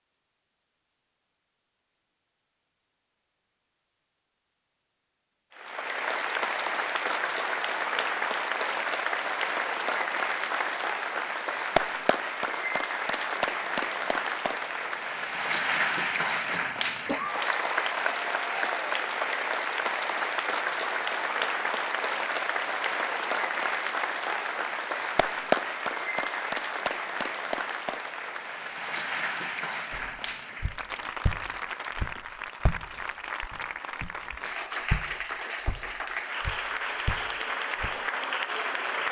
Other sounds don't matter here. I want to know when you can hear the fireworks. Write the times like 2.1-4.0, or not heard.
not heard.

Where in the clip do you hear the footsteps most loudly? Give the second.
35 s.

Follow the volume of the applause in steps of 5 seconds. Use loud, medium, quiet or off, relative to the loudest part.
off, loud, loud, loud, loud, loud, medium, loud.